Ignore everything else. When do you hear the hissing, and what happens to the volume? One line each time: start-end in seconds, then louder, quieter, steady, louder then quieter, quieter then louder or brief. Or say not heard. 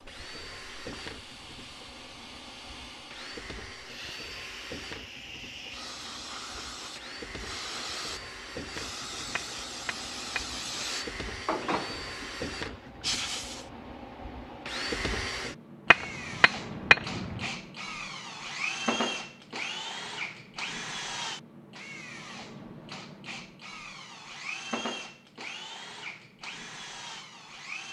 0.0-13.7 louder.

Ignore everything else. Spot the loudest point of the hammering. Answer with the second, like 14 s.
17 s.